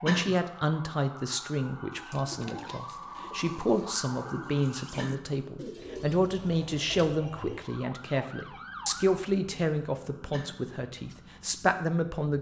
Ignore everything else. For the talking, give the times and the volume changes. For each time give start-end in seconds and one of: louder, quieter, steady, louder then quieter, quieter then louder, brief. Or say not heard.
0.0-12.3 steady.